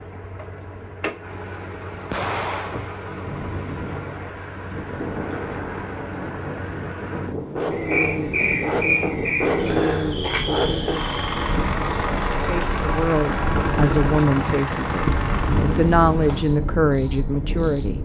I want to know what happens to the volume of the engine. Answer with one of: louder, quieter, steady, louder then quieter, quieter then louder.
louder.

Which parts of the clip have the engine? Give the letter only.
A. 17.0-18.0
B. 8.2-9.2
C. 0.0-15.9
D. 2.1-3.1
C.